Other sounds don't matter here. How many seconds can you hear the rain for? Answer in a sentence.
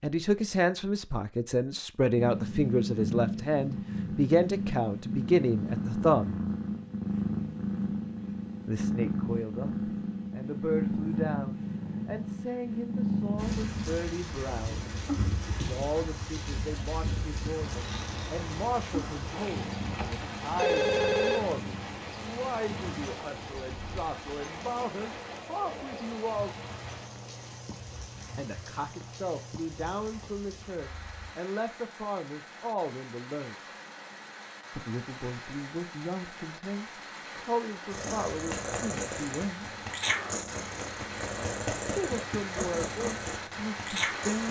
The rain can be heard for 31 seconds in total.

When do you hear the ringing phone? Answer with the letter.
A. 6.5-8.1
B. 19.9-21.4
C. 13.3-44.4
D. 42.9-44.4
B.